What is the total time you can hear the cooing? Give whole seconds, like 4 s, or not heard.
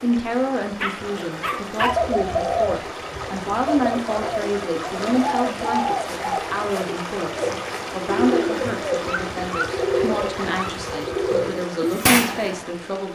11 s.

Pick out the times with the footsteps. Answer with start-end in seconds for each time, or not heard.
not heard.